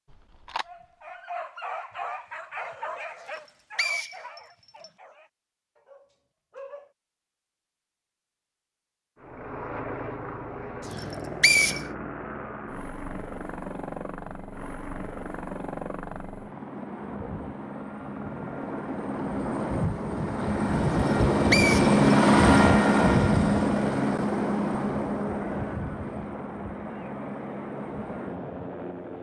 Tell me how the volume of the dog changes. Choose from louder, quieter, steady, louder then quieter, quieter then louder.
quieter.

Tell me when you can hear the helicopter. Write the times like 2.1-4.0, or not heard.
9.2-29.1.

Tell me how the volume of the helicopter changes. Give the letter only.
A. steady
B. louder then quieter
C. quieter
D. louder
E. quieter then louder
B.